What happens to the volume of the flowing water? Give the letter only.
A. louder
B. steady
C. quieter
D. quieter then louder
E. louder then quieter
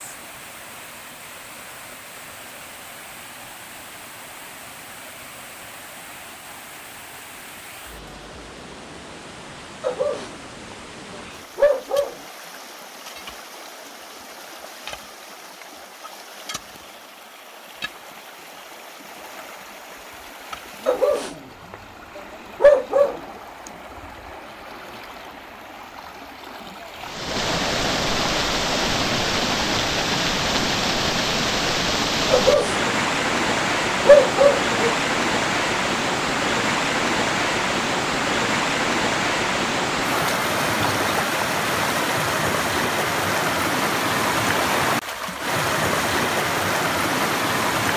A.